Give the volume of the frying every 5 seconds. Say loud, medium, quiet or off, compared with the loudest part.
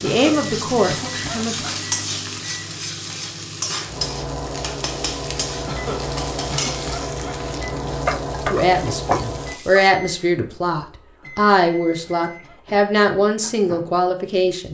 loud, loud, off.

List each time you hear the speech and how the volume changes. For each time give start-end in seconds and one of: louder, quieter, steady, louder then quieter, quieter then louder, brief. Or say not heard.
0.0-1.6 brief
8.3-14.6 steady.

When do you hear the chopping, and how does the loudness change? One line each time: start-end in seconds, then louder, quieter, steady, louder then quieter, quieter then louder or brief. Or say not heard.
not heard.